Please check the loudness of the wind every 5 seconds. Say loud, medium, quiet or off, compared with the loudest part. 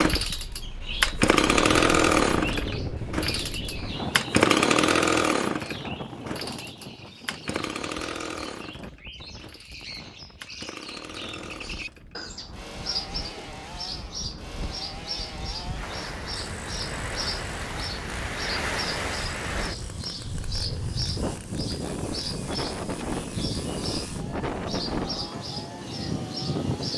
loud, medium, quiet, loud, loud, loud.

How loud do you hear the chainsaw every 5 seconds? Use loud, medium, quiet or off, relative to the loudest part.
loud, medium, quiet, quiet, quiet, quiet.